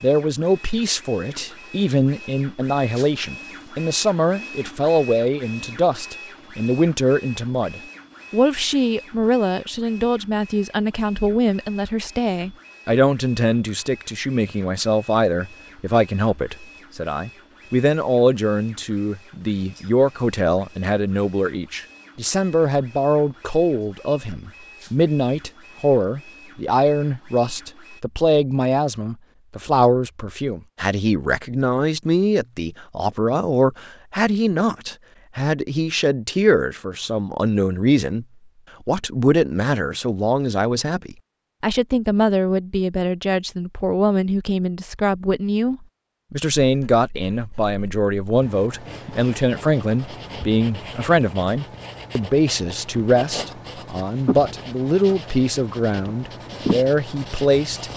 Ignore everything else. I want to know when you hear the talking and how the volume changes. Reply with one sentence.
The talking can be heard from 0.0 to 38.2 s, at a steady volume; and from 38.9 to 57.9 s, at a steady volume.